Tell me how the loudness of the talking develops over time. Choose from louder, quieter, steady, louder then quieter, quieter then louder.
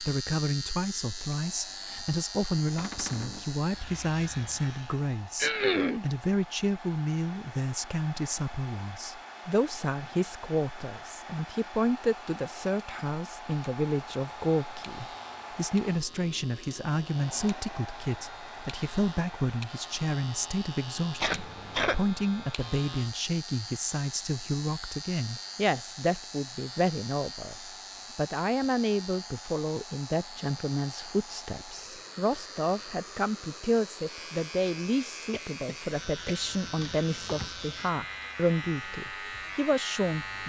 steady.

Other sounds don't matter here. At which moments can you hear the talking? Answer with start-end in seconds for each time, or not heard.
0.0-40.4.